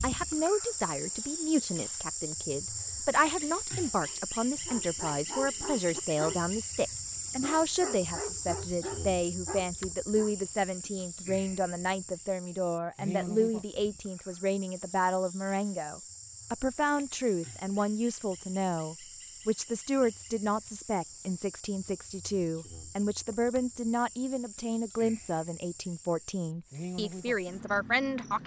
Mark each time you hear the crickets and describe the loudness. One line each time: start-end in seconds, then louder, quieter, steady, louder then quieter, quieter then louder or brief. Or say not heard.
0.0-28.4 quieter.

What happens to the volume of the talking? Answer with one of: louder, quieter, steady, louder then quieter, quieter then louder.
steady.